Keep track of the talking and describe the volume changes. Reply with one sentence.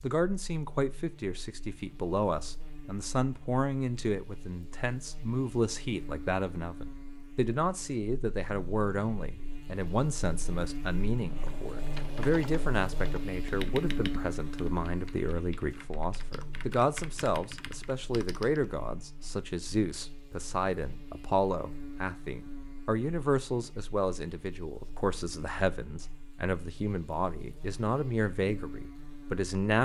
The loudness of the talking stays about the same.